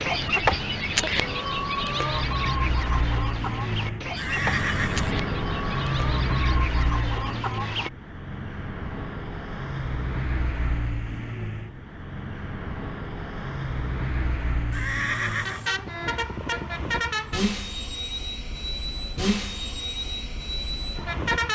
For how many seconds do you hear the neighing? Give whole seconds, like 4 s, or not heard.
2 s.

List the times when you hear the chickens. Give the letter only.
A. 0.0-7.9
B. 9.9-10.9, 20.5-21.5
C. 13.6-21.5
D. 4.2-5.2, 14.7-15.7
A.